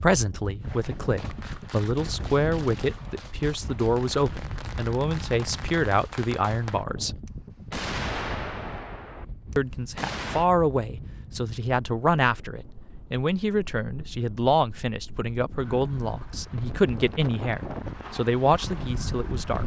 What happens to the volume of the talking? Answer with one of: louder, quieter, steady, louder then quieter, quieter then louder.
steady.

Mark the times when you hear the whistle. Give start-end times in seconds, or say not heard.
not heard.